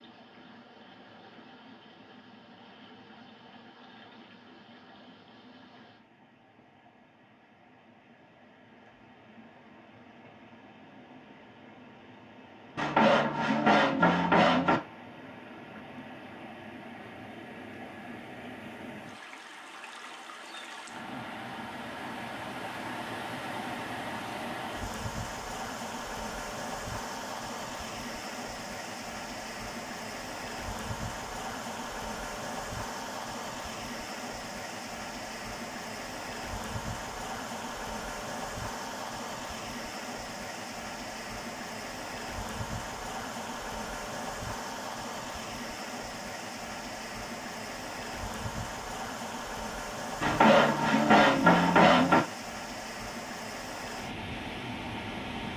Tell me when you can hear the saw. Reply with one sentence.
You can hear the saw from 12.8 to 14.8 s and from 50.2 to 52.2 s.